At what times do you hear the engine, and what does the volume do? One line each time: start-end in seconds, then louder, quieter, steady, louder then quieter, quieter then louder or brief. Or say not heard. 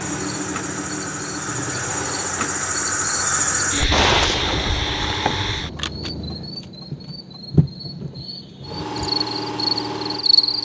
0.0-5.7 quieter then louder
8.6-10.6 brief.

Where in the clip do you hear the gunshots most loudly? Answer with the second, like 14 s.
4 s.